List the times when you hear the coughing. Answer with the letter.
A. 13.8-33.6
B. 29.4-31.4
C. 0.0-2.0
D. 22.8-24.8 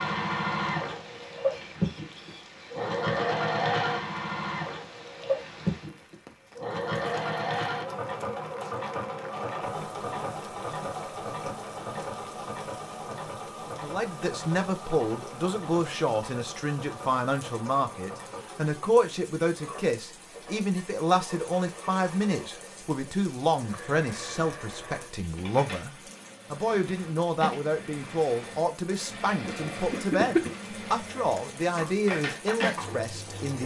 B.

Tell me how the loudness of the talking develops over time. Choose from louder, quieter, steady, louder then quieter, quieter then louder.
steady.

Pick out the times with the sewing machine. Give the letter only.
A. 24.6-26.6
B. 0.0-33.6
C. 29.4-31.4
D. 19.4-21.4
B.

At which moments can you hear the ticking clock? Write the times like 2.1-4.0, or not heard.
not heard.